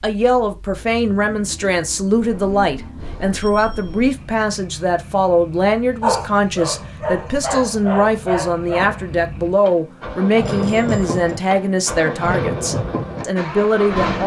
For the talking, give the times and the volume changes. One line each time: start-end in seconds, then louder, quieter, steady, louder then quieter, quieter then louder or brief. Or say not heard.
0.0-14.2 steady.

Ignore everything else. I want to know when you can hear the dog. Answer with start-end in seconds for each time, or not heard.
6.0-9.1.